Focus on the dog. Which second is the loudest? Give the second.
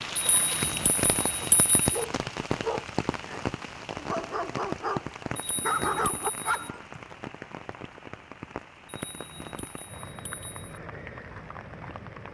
6 s.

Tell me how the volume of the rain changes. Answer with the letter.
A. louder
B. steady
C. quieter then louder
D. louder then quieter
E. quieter
E.